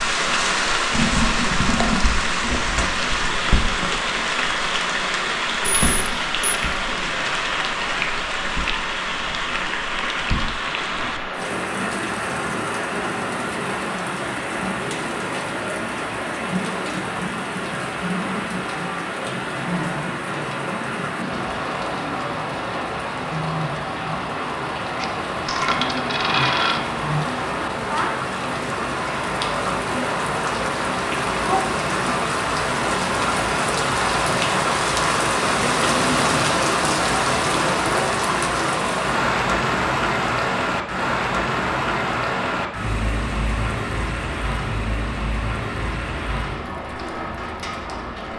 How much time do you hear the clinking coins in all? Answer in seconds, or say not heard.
3 s.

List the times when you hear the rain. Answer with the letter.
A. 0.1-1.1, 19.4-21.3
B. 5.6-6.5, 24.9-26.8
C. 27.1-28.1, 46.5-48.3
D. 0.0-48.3
D.